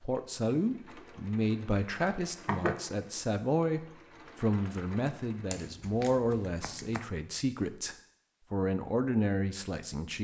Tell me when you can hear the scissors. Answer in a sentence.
You can hear the scissors from 2.0 to 2.9 s and from 5.5 to 7.0 s.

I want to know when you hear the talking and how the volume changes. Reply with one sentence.
The talking can be heard from 0.0 to 10.1 s, at a steady volume.